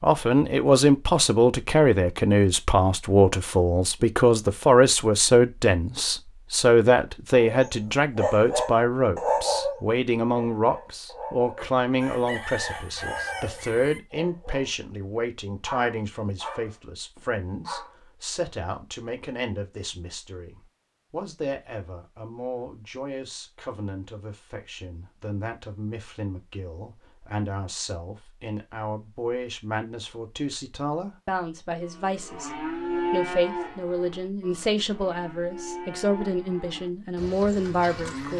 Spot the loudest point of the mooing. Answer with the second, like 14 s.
33 s.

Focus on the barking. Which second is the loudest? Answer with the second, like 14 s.
9 s.